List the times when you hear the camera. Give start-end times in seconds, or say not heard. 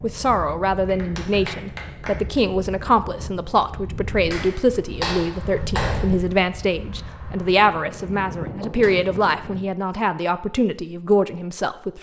not heard.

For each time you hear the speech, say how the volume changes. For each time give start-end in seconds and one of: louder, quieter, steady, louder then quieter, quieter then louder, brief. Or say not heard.
0.0-11.9 steady.